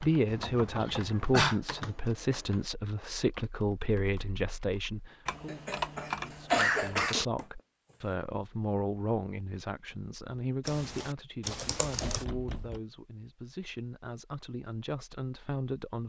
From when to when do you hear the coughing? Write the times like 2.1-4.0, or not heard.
0.8-1.6, 5.5-7.2, 11.5-12.2.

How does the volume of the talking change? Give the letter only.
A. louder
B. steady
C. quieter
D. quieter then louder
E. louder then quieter
C.